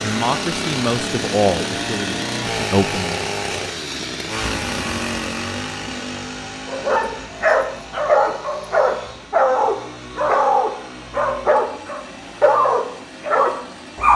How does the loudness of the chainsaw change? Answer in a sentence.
The volume of the chainsaw goes down.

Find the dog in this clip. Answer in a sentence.
You can hear the dog from 6.7 to 14.1 s.